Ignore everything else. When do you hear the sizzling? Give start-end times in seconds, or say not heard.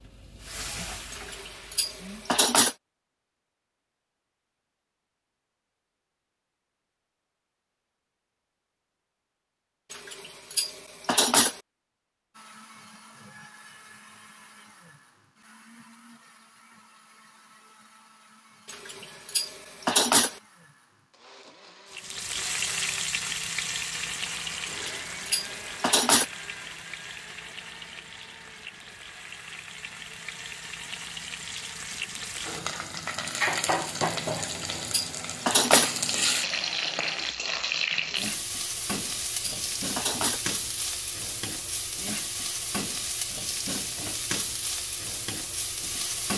0.0-2.5, 21.9-46.3.